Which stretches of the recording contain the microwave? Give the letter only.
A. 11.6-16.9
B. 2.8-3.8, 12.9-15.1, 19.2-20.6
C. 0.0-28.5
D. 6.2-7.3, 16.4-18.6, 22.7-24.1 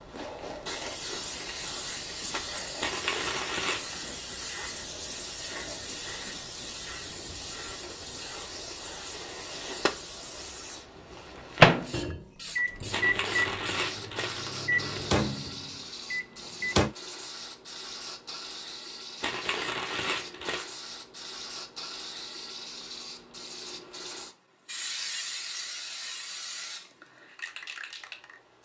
A.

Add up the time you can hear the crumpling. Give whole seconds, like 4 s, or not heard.
5 s.